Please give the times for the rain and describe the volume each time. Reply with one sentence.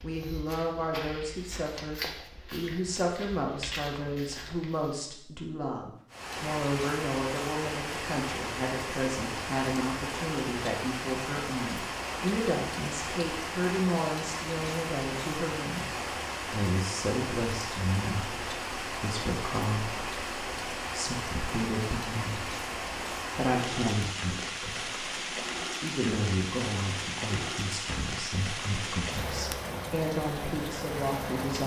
The rain can be heard from 6.1 to 31.6 s, at a steady volume.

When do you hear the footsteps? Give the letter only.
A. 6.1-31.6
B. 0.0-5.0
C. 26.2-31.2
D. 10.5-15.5
B.